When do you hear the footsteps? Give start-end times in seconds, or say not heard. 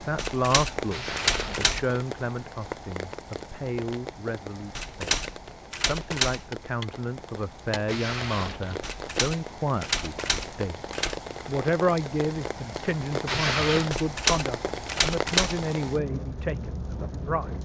not heard.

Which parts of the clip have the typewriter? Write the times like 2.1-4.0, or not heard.
0.1-1.8, 4.8-6.5, 8.8-11.2, 13.9-15.7.